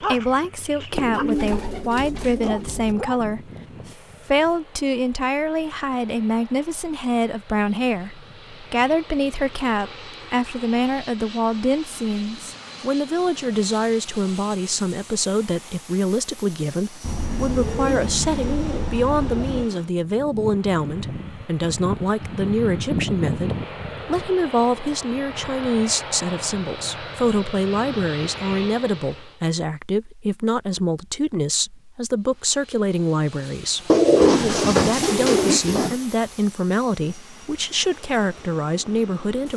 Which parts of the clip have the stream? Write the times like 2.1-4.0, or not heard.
not heard.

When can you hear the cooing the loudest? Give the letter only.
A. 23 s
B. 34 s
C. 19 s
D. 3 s
B.